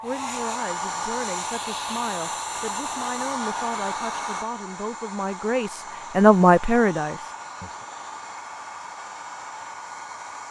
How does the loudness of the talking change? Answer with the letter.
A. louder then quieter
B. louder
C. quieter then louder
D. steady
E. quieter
B.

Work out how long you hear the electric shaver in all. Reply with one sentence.
The electric shaver can't be heard in this clip.